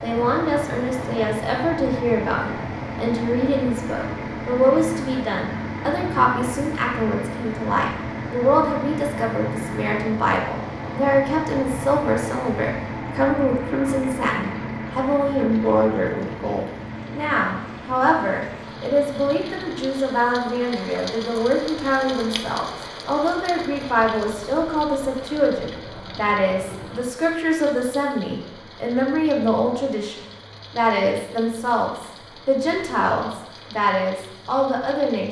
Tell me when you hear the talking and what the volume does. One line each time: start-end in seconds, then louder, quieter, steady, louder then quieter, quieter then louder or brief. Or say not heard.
0.0-35.2 steady.